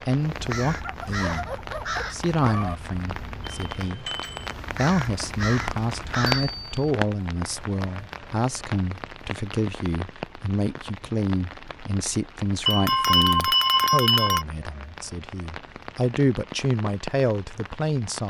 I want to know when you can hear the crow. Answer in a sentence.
The crow can be heard from 0.2 to 6.8 s.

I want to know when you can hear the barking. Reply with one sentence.
You can hear the barking from 0.8 to 2.8 s.